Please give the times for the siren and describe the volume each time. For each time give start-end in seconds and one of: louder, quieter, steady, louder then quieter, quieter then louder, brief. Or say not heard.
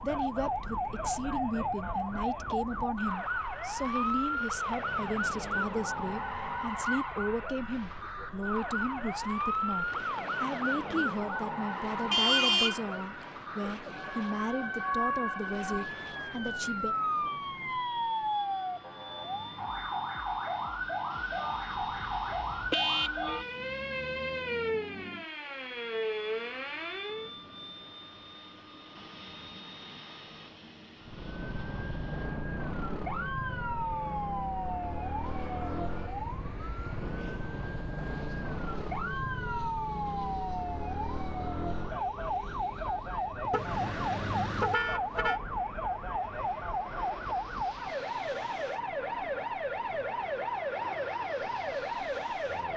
0.0-27.3 steady
31.0-52.7 steady.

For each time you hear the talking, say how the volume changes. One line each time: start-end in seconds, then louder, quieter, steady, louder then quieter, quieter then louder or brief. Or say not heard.
0.0-16.9 steady.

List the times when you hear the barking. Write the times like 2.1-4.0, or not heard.
not heard.